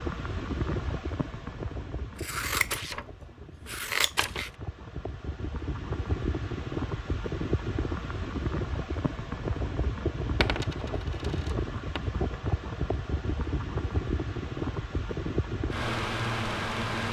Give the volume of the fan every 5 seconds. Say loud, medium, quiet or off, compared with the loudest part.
medium, loud, loud, loud.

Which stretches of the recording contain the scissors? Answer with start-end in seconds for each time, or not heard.
2.1-4.5.